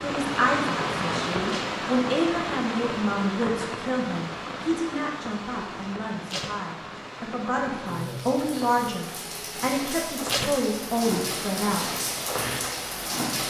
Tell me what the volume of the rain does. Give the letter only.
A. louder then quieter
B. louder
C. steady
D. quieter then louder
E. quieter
D.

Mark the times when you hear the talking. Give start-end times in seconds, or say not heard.
0.0-11.8.